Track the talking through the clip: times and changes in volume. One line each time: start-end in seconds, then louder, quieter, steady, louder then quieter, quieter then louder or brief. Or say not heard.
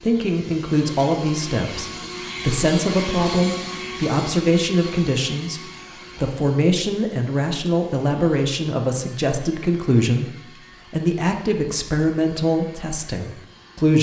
0.0-13.9 steady.